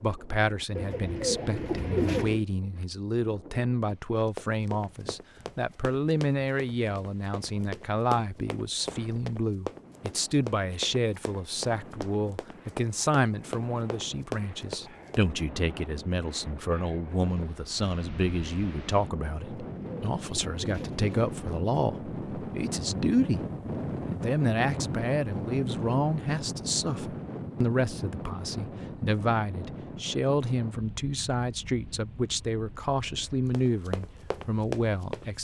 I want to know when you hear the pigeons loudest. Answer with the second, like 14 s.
2 s.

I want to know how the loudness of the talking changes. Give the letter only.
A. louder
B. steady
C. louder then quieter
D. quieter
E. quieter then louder
B.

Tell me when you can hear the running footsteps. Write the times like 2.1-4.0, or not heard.
4.3-15.2, 33.5-35.2.